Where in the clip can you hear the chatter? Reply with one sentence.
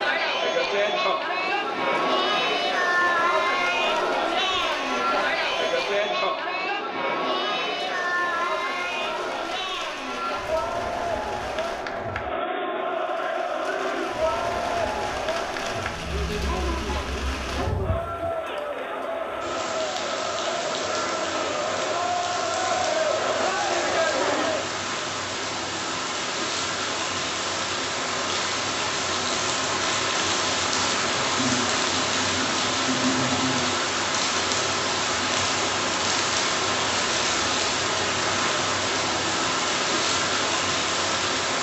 The chatter can be heard from 0.0 to 24.7 s.